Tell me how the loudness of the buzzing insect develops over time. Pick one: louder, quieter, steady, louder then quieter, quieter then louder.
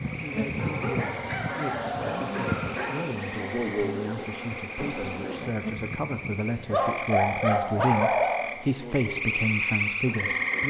quieter.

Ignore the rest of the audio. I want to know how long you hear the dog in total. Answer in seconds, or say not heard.
4 s.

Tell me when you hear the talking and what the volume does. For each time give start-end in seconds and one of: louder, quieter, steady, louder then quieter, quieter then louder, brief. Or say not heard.
0.0-10.6 louder.